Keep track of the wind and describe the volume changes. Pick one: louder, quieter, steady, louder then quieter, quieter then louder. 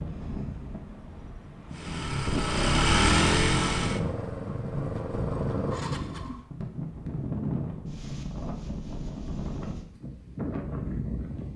louder.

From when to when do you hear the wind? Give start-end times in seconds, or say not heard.
0.0-11.5.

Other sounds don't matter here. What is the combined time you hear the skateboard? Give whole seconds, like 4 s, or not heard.
not heard.